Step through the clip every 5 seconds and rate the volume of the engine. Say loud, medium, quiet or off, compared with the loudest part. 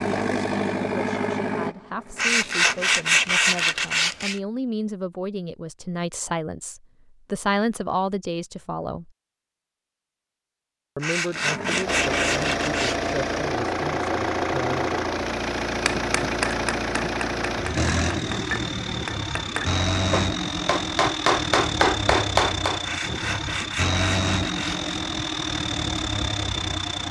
loud, off, loud, loud, loud, loud.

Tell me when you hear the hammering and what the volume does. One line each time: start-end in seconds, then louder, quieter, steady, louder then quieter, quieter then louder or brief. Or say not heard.
15.8-22.8 louder.